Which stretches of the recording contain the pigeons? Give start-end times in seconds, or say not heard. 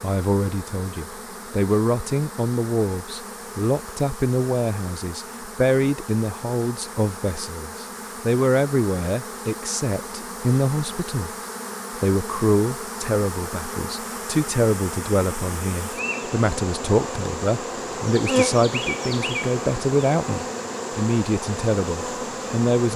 not heard.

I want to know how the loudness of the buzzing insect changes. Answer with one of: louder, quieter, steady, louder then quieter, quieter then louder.
louder.